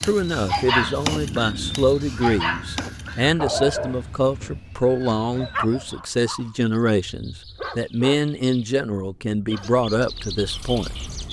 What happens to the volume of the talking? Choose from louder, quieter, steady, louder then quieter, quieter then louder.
steady.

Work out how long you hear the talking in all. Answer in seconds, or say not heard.
11 s.